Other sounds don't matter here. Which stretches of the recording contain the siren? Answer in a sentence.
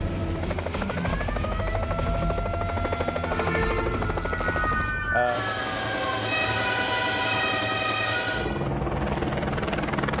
The siren can be heard from 0.1 to 8.7 s.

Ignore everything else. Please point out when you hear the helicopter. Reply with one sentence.
The helicopter can be heard from 0.0 to 10.1 s.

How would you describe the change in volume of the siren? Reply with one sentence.
The volume of the siren goes up.